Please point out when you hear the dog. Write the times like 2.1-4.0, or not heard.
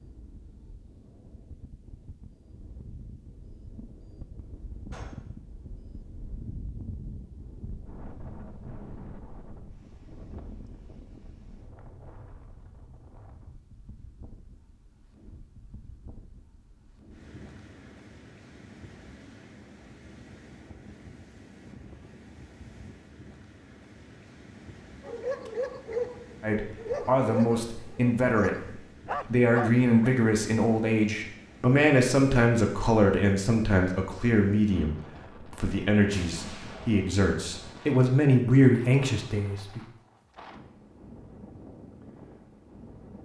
25.0-30.1.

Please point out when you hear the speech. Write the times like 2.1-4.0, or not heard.
26.4-39.8.